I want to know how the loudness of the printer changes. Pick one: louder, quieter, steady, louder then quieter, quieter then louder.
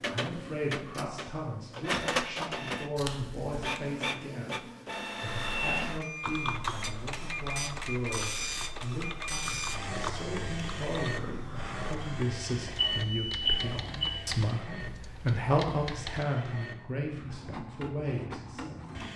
quieter.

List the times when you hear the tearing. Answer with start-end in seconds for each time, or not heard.
3.0-3.8.